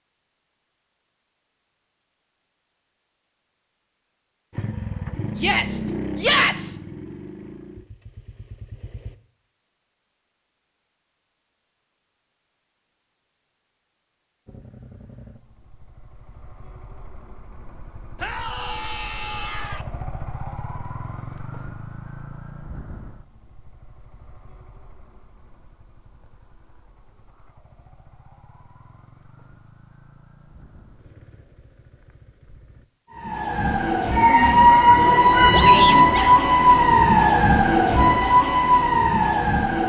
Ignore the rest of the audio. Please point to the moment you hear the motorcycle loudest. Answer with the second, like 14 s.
6 s.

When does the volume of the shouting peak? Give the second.
6 s.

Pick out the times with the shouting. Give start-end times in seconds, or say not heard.
5.3-6.8, 18.2-19.9, 35.5-36.4.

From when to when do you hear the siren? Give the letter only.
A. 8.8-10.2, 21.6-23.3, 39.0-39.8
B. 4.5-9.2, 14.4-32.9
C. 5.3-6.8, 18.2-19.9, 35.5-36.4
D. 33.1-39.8
D.